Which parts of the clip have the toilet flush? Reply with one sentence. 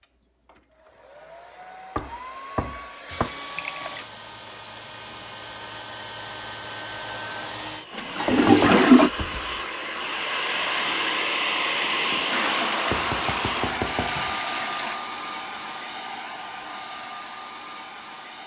You can hear the toilet flush from 3.0 to 4.1 s, from 8.0 to 9.1 s and from 12.3 to 15.0 s.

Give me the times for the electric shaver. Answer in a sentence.
You can't hear the electric shaver here.